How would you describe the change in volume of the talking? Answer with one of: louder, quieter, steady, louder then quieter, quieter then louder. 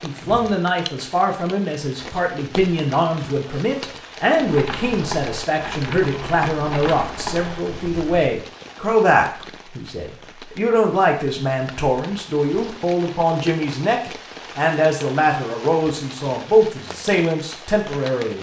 steady.